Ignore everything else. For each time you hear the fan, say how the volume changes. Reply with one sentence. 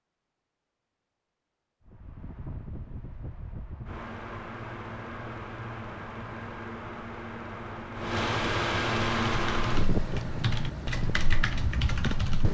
The fan can be heard from 1.9 to 12.4 s, getting louder then quieter.